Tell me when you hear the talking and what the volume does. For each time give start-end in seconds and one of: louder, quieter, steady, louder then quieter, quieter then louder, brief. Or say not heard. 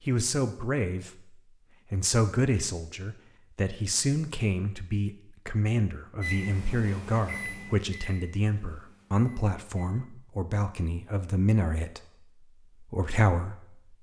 0.0-13.9 steady.